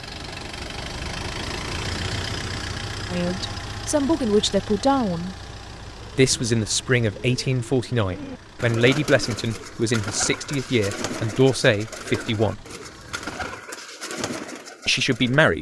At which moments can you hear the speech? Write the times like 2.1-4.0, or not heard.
3.1-5.3, 6.2-12.6, 14.8-15.5.